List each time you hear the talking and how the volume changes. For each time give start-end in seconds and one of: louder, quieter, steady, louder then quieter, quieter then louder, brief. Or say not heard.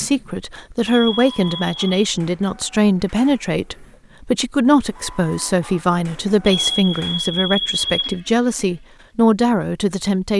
0.0-10.3 steady.